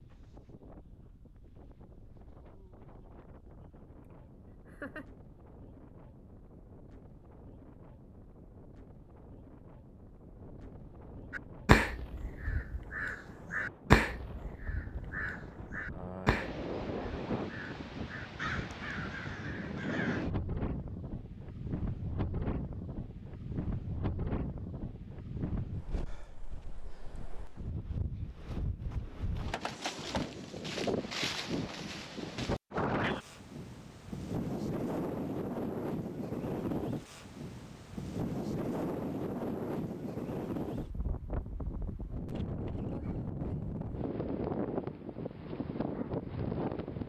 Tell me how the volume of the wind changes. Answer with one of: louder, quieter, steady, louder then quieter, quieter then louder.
louder.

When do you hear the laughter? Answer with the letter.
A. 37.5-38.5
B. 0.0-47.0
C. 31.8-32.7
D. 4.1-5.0
D.